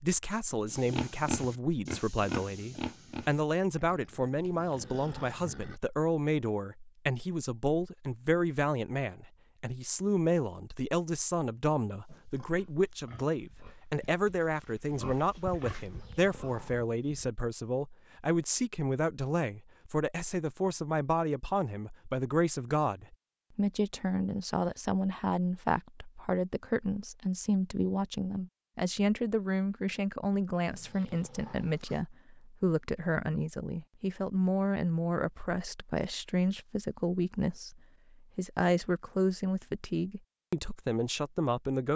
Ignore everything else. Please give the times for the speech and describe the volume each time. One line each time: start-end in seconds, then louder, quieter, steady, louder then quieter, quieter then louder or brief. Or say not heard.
0.0-41.9 steady.